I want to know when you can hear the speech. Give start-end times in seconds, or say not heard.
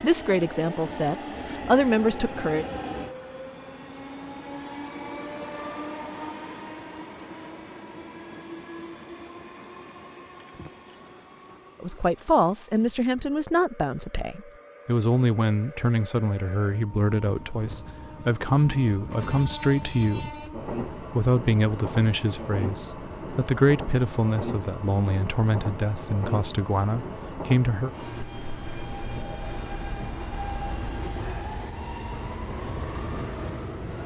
0.0-2.6, 11.8-20.4, 21.1-27.9.